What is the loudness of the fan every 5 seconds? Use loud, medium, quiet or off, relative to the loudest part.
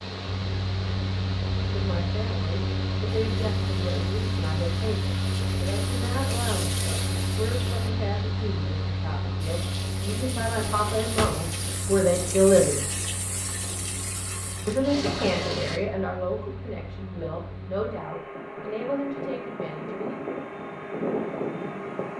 loud, loud, medium, medium, loud.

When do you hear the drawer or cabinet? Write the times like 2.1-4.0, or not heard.
10.4-11.5.